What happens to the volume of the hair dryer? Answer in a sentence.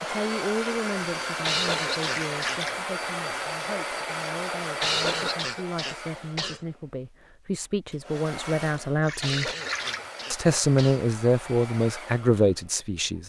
The loudness of the hair dryer goes down.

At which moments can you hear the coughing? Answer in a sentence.
The coughing can be heard from 1.4 to 2.6 s, from 4.8 to 6.6 s and from 9.2 to 11.0 s.